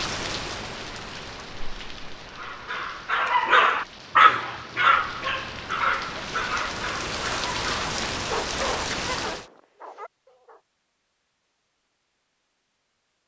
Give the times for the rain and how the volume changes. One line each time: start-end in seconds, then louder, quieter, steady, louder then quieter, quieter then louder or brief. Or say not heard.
0.0-9.4 quieter then louder.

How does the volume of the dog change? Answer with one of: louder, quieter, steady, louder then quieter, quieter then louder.
quieter.